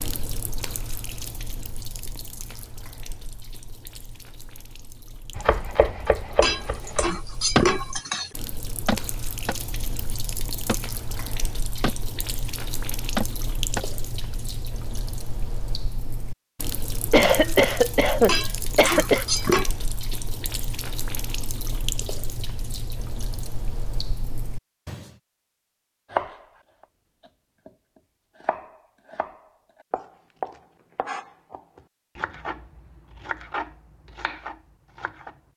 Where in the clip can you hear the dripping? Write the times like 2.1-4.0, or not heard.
0.0-25.1.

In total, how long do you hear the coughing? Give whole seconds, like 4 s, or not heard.
2 s.